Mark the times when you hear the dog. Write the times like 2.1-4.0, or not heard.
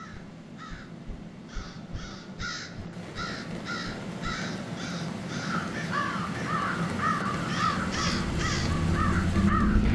not heard.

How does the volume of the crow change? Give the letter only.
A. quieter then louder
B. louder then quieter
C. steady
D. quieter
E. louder
E.